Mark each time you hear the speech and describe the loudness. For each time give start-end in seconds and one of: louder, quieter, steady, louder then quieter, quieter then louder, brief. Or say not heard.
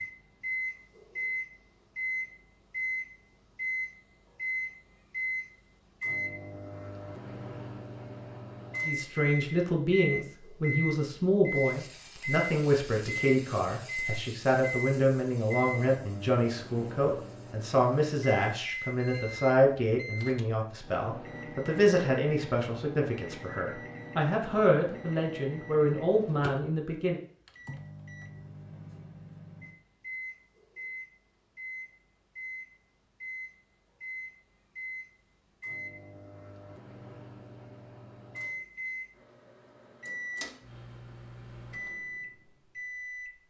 8.8-27.2 steady.